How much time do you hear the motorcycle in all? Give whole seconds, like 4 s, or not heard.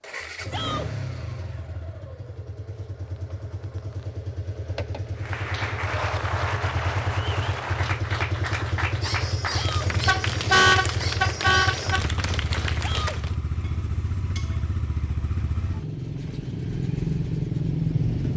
18 s.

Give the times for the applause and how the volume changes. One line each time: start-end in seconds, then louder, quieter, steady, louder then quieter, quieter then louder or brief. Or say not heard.
5.2-13.3 steady.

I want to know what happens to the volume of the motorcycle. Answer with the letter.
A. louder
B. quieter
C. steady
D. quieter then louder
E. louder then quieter
A.